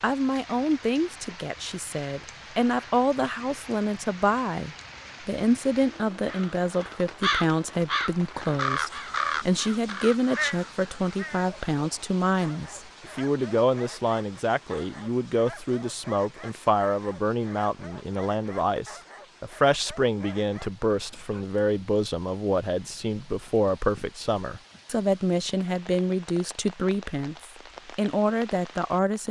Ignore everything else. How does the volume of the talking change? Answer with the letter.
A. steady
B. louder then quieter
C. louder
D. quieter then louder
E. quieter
A.